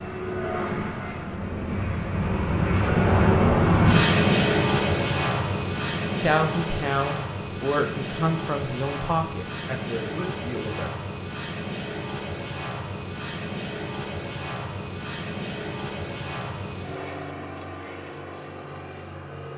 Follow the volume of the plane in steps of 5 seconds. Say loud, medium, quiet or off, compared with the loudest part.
loud, medium, medium, quiet.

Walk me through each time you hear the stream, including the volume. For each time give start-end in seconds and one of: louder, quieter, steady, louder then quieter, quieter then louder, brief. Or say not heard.
not heard.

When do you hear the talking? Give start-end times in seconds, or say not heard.
6.1-10.9.